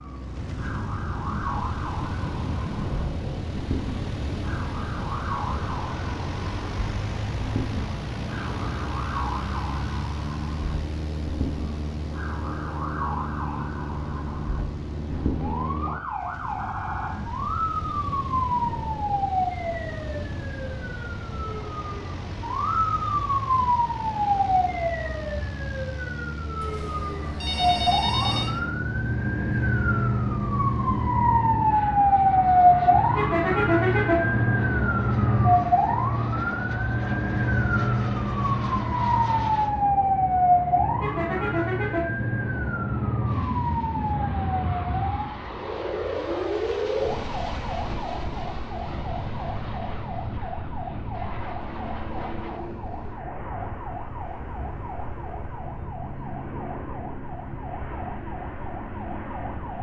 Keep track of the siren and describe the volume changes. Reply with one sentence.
The volume of the siren goes up, then down.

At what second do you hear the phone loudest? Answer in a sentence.
The volume of the phone peaks at 28 seconds.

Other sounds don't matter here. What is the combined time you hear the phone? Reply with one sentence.
The phone can be heard for 2 seconds in total.